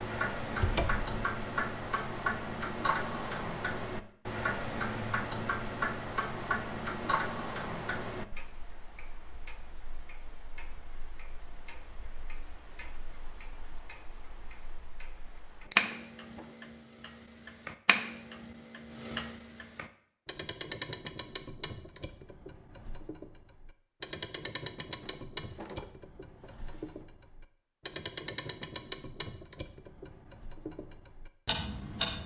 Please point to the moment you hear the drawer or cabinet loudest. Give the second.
1 s.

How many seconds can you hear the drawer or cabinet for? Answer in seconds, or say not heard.
3 s.